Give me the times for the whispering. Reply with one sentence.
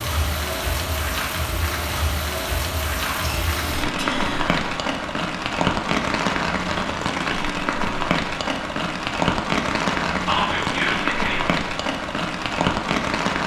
You can hear the whispering from 3.0 to 4.6 s and from 10.2 to 11.6 s.